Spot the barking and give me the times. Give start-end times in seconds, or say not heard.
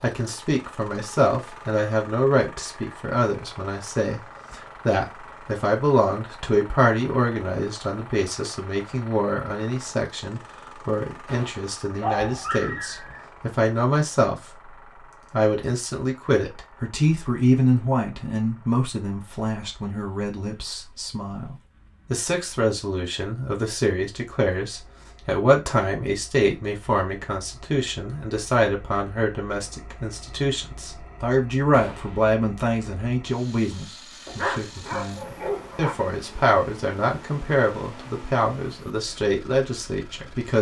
12.0-13.2, 34.2-36.0.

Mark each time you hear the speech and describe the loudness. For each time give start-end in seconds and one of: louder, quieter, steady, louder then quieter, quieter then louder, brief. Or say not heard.
0.0-40.5 steady.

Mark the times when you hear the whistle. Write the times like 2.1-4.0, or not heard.
not heard.